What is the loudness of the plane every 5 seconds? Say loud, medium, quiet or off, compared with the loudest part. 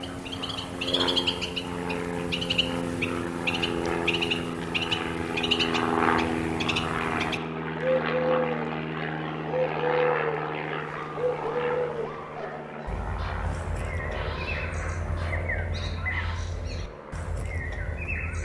loud, loud, medium, quiet.